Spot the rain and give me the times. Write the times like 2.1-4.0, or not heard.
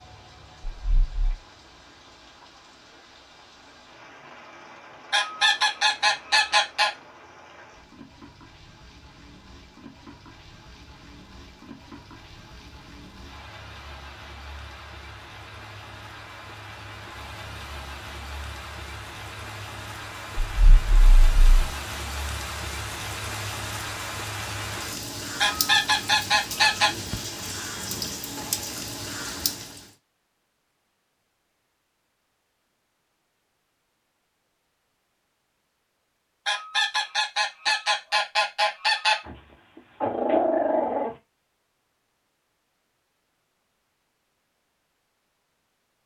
0.0-29.9.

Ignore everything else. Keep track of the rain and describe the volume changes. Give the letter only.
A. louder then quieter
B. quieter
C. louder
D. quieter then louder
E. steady
C.